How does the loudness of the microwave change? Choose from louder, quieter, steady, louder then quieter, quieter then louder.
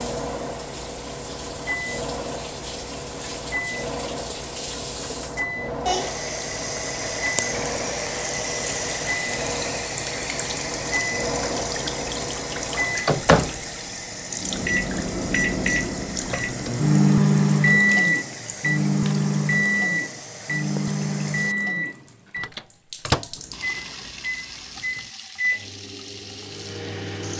louder then quieter.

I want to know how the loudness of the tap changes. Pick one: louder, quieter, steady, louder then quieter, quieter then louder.
louder then quieter.